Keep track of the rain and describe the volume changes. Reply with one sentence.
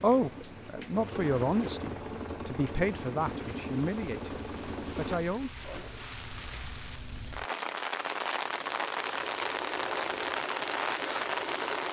The loudness of the rain goes up.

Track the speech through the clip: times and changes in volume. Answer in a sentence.
You can hear the speech from 0.0 to 5.5 s, getting quieter.